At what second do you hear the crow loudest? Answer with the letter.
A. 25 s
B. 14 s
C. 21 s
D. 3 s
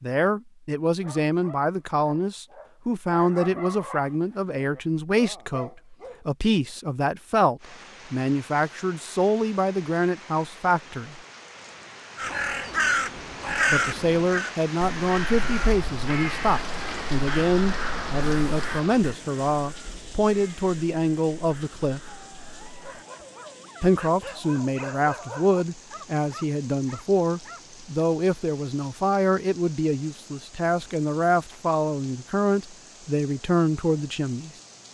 B.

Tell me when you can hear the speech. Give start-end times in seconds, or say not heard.
0.0-11.2, 13.7-22.0, 23.8-34.5.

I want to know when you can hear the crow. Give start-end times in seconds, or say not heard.
12.2-23.2.